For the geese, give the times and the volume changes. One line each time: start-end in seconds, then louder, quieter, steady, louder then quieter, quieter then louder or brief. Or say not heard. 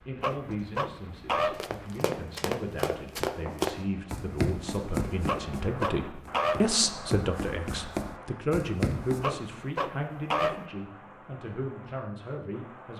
not heard.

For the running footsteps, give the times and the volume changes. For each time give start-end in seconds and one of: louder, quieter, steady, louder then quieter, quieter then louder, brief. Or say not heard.
1.6-9.3 quieter then louder.